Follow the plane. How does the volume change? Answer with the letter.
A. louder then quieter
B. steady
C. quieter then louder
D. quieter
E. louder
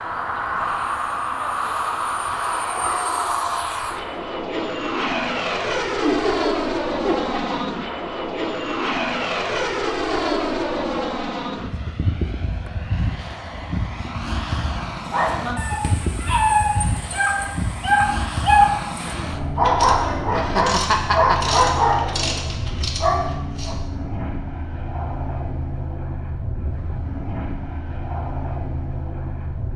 D.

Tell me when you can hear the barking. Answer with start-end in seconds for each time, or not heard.
15.1-23.8.